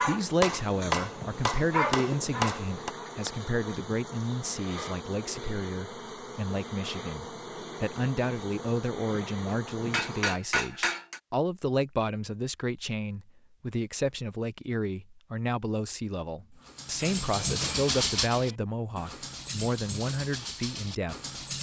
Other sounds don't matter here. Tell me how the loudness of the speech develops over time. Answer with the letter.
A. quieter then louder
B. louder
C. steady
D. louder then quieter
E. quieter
C.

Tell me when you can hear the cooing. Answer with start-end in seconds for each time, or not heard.
not heard.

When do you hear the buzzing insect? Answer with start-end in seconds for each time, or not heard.
0.0-10.3.